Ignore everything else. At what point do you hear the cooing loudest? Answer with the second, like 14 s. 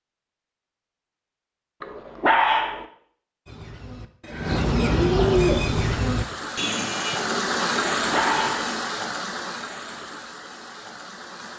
5 s.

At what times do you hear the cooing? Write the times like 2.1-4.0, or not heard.
3.5-8.8.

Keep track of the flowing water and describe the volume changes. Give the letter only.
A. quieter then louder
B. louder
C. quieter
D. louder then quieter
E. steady
D.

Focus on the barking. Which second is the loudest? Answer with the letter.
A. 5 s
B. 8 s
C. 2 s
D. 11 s
C.